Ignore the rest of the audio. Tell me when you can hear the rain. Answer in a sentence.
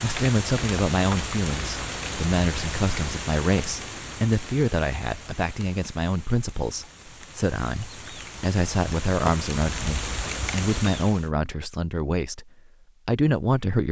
You can hear the rain from 0.0 to 11.3 s.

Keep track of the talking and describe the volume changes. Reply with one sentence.
The volume of the talking stays about the same.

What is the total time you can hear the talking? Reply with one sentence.
You can hear the talking for 14 seconds altogether.